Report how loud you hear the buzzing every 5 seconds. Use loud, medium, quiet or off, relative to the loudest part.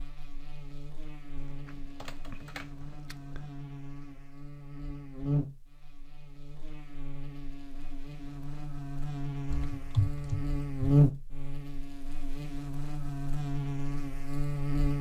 quiet, medium, loud.